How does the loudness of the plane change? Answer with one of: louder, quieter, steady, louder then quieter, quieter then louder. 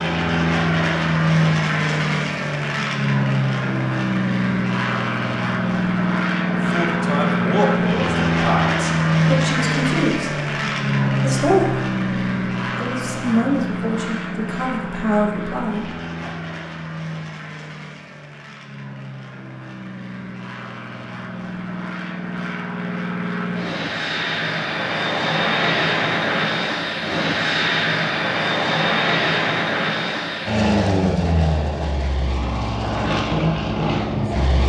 quieter then louder.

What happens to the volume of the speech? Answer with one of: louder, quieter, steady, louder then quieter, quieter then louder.
steady.